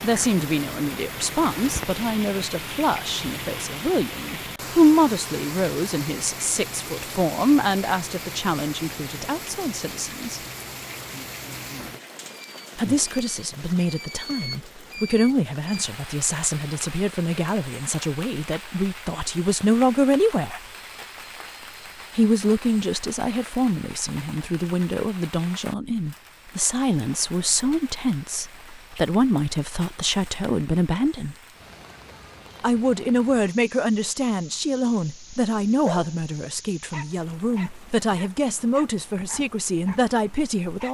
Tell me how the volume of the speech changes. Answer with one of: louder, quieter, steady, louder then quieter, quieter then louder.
steady.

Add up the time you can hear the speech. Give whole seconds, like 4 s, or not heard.
36 s.